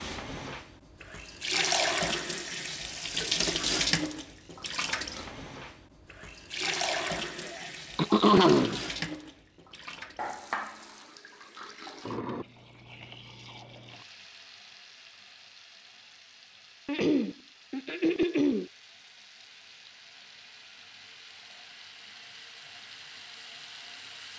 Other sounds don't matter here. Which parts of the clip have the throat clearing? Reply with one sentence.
You can hear the throat clearing from 8.0 to 8.8 s and from 16.9 to 18.7 s.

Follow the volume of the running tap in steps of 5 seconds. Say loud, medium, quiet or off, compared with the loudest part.
loud, medium, medium, quiet, quiet.